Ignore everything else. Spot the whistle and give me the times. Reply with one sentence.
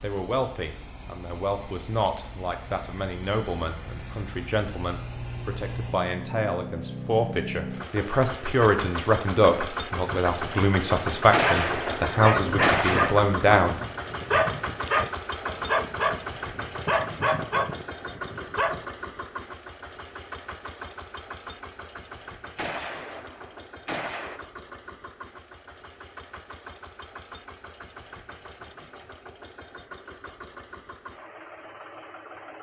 The whistle can't be heard in this clip.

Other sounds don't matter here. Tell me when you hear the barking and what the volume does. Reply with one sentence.
The barking can be heard from 11.4 to 18.8 s, at a steady volume.